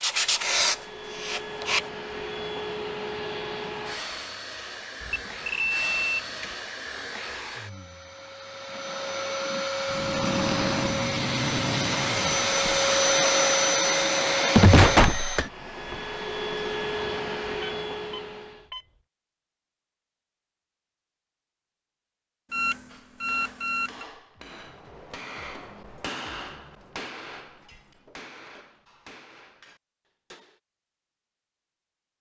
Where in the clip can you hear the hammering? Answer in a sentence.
The hammering can be heard from 22.9 to 30.6 s.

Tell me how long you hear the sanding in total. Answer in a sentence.
The sanding can be heard for 2 seconds in total.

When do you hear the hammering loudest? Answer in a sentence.
The volume of the hammering peaks at 26 seconds.